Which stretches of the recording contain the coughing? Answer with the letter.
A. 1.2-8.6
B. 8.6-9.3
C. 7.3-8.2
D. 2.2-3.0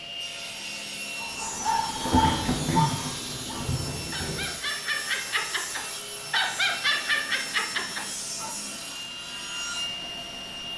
D.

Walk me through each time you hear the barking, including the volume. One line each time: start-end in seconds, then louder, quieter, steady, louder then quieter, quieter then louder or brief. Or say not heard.
1.2-8.6 quieter then louder.